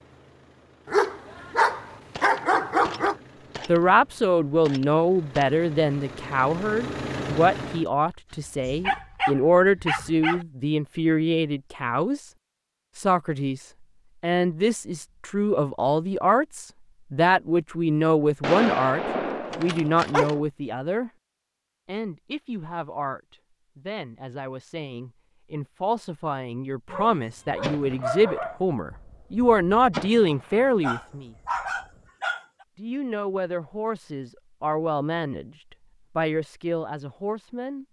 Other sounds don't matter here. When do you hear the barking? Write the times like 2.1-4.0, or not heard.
0.8-3.1, 8.8-10.4, 19.5-20.4, 26.9-28.6, 30.8-32.6.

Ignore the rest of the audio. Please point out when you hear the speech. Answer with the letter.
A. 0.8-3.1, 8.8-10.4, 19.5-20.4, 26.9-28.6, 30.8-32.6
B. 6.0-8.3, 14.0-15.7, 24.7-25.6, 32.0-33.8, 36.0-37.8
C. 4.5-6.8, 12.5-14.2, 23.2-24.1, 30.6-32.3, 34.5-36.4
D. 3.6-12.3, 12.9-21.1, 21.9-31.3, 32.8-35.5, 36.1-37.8
D.